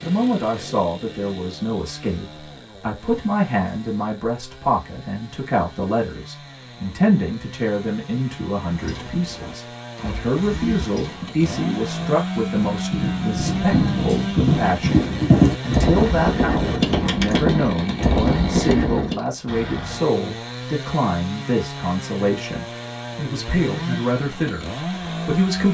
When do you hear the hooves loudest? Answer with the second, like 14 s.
15 s.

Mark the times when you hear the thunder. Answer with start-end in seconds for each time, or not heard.
not heard.